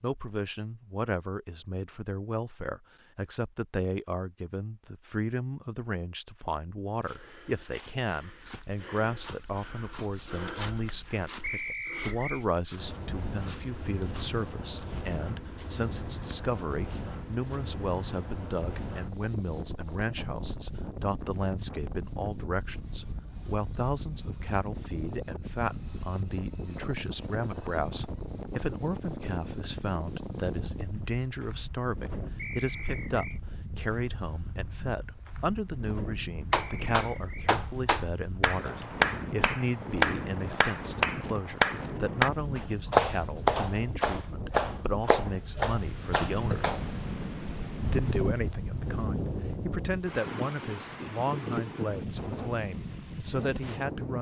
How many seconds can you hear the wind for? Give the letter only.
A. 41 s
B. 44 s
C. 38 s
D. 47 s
A.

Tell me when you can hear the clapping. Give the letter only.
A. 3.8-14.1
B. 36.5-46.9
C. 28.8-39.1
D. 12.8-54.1
B.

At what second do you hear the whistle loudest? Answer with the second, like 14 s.
12 s.